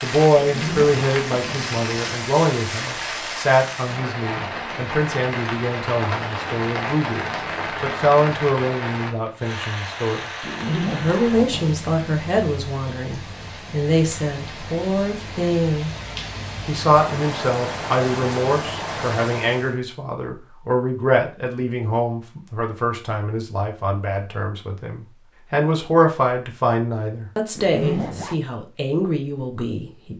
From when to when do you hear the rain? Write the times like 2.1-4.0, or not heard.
0.0-19.8.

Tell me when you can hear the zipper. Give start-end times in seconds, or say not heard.
0.3-1.8, 10.4-11.8, 27.6-28.4.